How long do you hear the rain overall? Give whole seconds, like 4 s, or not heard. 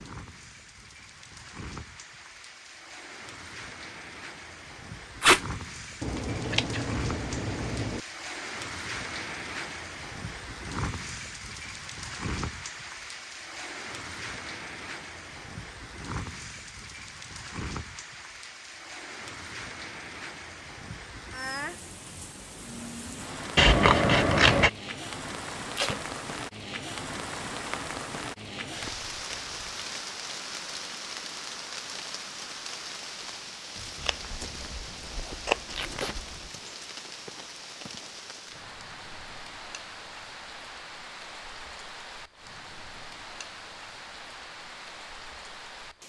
46 s.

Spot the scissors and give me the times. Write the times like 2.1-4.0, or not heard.
6.0-8.0, 23.6-24.7, 34.0-36.2.